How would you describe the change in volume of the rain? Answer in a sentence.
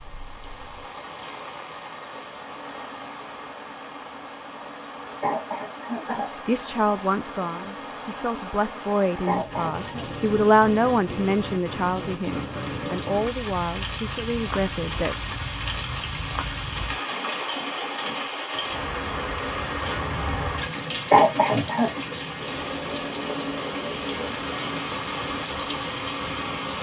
The volume of the rain goes up.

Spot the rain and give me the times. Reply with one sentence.
The rain can be heard from 0.0 to 26.7 s.